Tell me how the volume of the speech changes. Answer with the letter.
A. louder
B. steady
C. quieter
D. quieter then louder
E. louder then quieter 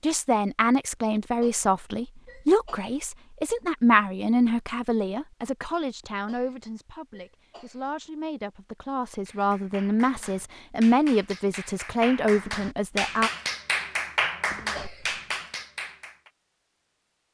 D.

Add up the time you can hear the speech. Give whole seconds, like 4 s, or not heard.
13 s.